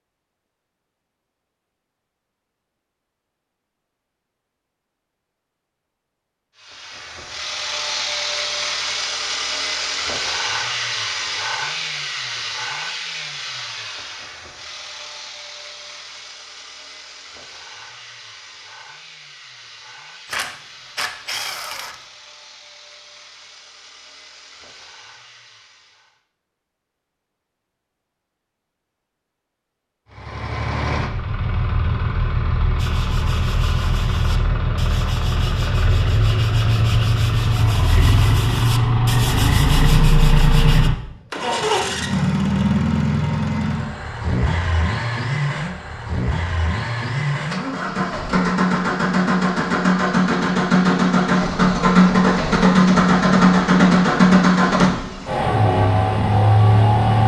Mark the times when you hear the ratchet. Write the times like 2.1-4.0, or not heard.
20.2-21.9.